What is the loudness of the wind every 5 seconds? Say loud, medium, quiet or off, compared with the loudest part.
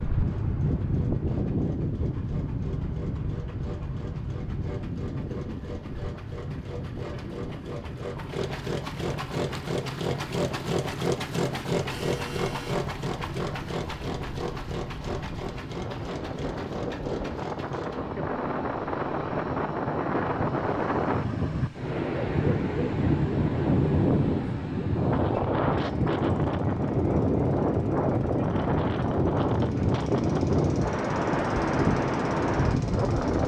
medium, quiet, quiet, medium, loud, loud, loud.